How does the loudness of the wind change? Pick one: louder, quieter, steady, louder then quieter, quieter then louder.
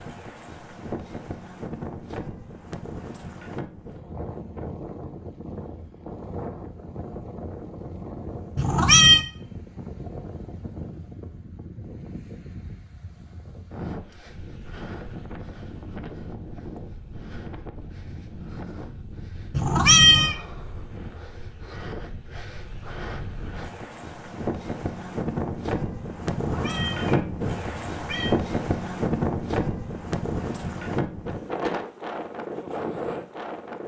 louder.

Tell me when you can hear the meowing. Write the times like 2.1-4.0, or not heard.
8.6-9.2, 19.5-20.4, 26.4-28.4.